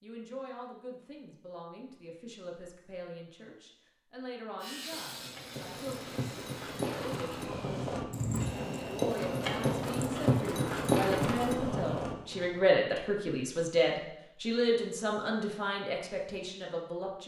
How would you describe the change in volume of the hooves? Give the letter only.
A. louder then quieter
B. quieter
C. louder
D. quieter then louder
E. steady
C.